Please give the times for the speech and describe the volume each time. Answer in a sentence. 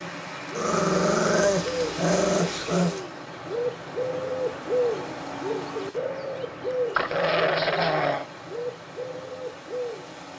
The speech can't be heard in this clip.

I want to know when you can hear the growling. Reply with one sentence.
You can hear the growling from 0.6 to 3.0 s and from 7.0 to 8.2 s.